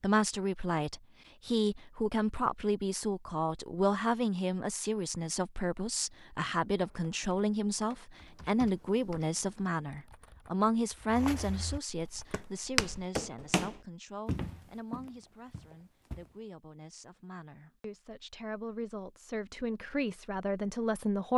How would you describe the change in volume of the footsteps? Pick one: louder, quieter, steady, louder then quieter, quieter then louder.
louder then quieter.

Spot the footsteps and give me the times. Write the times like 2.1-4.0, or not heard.
11.1-16.4.